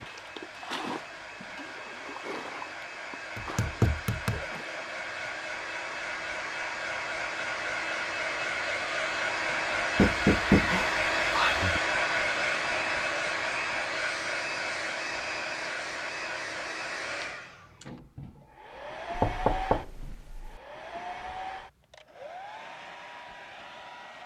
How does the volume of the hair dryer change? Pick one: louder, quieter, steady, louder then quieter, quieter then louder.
louder then quieter.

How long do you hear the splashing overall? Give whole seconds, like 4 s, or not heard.
5 s.